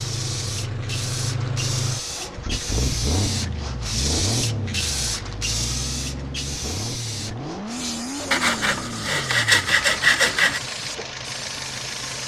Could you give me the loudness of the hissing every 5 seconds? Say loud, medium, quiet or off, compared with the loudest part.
loud, loud, medium.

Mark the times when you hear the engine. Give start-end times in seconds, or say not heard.
0.0-12.2.